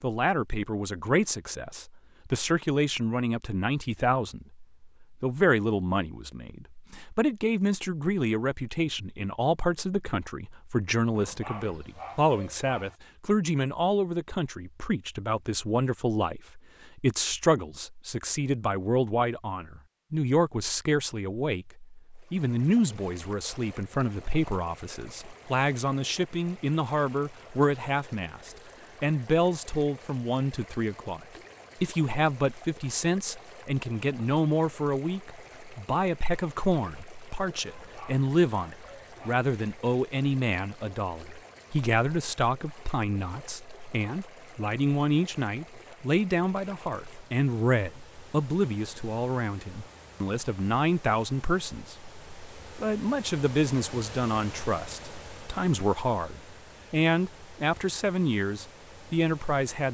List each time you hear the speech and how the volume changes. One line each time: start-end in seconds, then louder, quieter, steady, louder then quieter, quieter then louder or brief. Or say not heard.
0.0-59.9 steady.